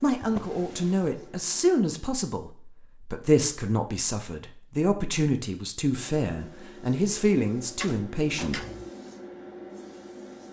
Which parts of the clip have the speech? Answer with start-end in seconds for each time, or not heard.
0.0-8.6.